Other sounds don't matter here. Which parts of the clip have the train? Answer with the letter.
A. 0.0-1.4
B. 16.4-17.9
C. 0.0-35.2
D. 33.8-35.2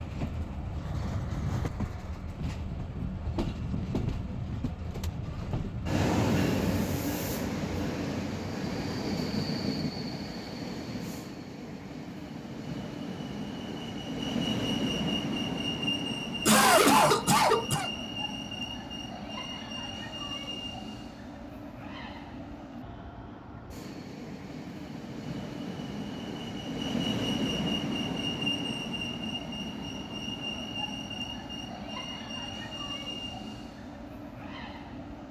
C.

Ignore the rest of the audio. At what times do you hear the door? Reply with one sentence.
The door can't be heard in this clip.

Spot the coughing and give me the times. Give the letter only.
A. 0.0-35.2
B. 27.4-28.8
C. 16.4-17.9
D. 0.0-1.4
C.